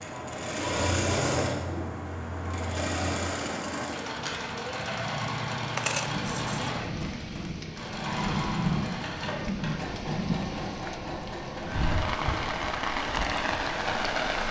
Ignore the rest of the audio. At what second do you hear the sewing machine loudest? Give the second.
1 s.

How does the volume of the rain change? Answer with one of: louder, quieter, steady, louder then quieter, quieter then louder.
louder.